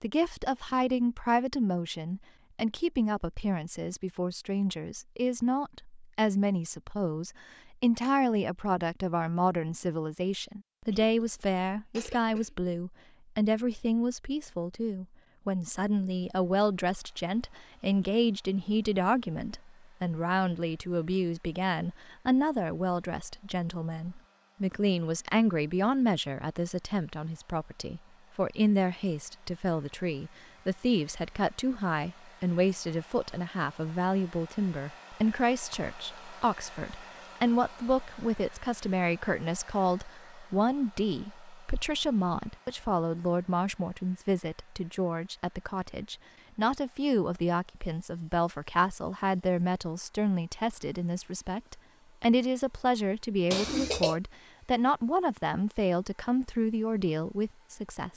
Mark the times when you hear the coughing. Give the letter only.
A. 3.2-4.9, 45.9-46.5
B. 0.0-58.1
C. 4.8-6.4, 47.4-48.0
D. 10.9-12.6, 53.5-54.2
D.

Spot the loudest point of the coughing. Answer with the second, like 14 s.
54 s.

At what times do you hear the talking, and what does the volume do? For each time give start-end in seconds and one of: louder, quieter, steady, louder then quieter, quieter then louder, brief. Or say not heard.
0.0-58.1 steady.